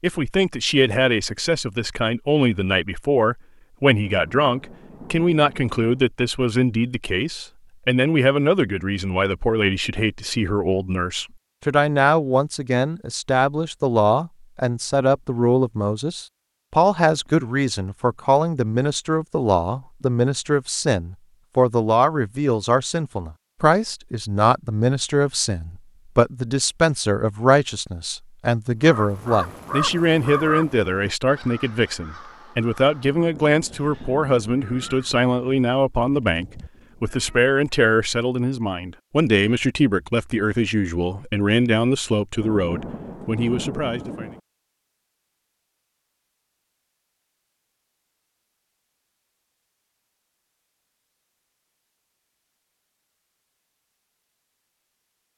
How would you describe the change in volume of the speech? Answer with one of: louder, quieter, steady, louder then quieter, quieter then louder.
steady.